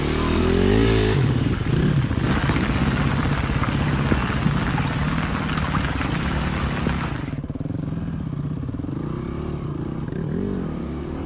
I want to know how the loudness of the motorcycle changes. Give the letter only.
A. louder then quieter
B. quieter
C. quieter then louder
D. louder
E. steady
B.